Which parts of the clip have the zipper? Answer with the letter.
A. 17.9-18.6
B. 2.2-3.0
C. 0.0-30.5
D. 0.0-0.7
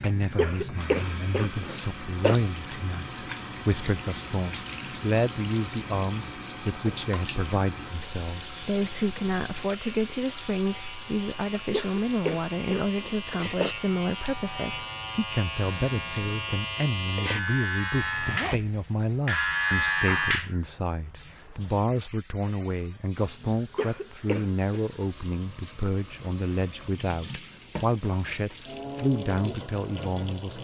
A.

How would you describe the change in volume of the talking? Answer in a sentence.
The volume of the talking stays about the same.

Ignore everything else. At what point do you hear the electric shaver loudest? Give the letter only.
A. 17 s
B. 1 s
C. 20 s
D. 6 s
C.